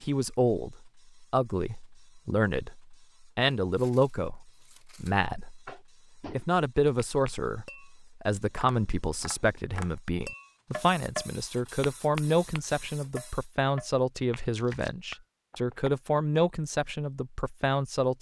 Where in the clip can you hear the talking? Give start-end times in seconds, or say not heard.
0.0-18.1.